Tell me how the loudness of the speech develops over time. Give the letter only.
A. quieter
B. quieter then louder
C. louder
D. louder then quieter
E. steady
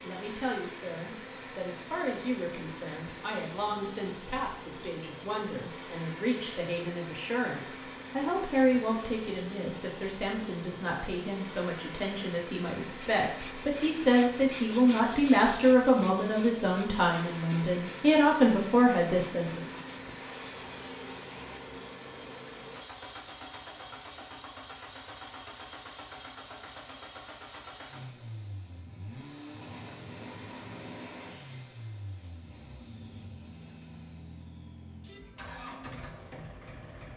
C.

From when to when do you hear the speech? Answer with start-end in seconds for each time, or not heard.
0.0-19.6.